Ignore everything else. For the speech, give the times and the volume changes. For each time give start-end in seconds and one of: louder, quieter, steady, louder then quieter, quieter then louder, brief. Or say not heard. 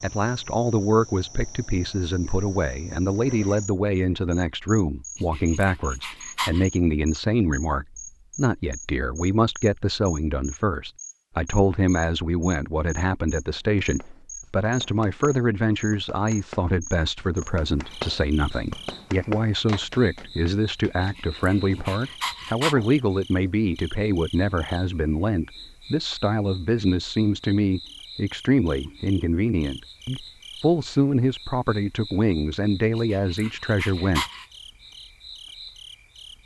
0.0-34.2 steady.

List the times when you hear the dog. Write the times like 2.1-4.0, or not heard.
5.2-6.7, 21.0-22.8, 33.0-34.5.